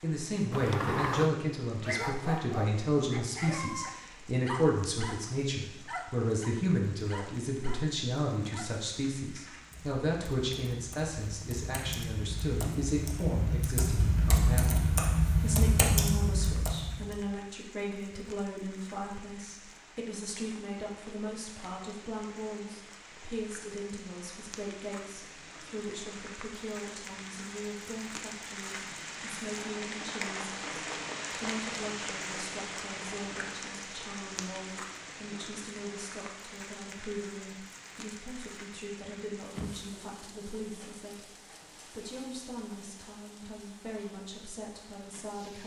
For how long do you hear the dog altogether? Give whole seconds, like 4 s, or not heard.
7 s.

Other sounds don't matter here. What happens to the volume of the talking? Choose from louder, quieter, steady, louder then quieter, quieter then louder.
quieter.